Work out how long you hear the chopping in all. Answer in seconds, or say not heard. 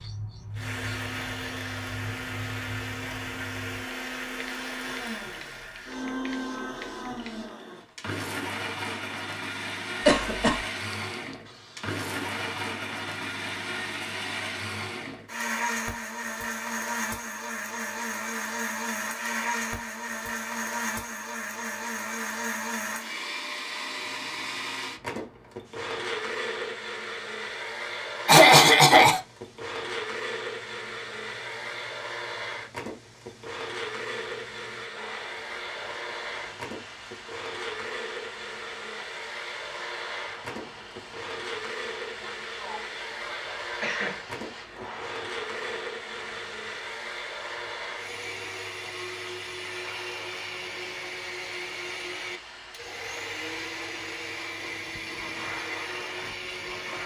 not heard.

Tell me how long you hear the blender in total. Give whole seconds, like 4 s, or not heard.
57 s.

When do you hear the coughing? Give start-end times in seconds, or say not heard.
10.1-10.6, 28.2-29.2, 42.2-44.1.